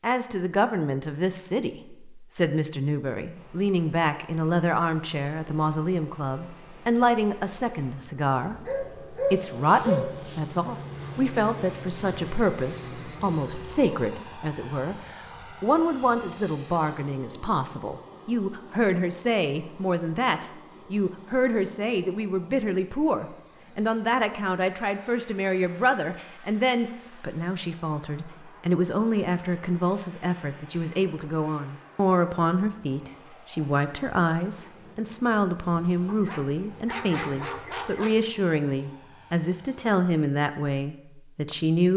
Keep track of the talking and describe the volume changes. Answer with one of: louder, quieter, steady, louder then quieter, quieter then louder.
steady.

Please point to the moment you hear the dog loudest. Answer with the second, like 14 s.
10 s.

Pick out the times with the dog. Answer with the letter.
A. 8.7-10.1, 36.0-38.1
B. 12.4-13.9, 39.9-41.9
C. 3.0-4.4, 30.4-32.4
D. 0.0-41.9
A.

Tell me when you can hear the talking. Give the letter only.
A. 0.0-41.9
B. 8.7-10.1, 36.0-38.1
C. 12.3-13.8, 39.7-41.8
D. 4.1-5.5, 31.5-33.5
A.